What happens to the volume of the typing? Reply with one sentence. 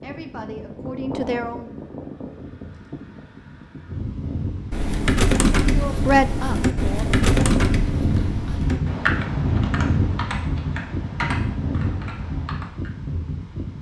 The loudness of the typing goes down.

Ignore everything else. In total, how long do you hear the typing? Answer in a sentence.
The typing can be heard for 8 seconds in total.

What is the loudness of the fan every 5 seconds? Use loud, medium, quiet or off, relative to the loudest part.
medium, loud, loud.